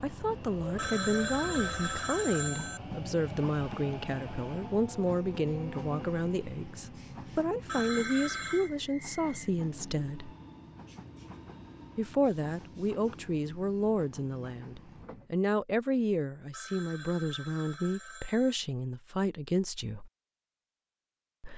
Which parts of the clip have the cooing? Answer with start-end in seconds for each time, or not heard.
not heard.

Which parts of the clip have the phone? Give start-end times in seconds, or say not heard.
0.8-2.8, 7.7-8.7, 16.5-18.6.